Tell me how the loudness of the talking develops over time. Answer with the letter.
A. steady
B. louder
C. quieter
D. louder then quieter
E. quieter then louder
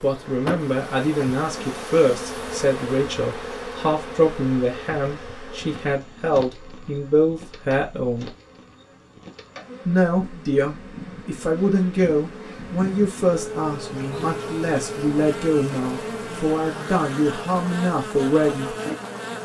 A.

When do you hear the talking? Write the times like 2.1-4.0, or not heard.
0.0-8.3, 9.8-18.7.